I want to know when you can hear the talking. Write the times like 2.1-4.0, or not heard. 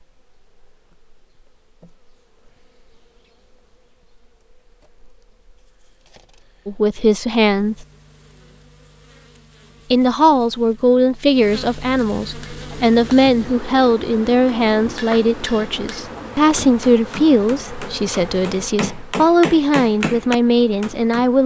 6.7-7.8, 9.9-21.4.